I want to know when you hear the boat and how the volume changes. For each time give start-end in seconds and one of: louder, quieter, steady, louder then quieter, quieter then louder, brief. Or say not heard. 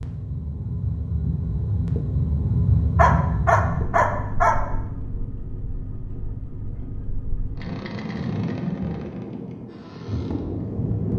0.0-11.1 quieter then louder.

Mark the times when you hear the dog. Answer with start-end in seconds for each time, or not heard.
3.0-4.5.